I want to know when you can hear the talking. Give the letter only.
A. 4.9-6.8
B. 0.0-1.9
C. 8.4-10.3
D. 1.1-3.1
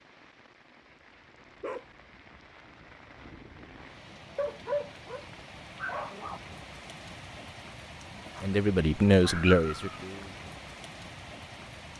C.